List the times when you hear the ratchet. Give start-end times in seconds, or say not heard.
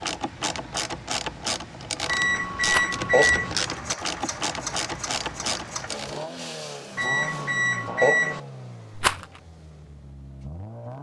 0.0-6.2.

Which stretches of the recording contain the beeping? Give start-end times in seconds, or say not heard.
2.0-3.5, 7.0-8.4.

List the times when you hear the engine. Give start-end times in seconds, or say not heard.
3.6-10.9.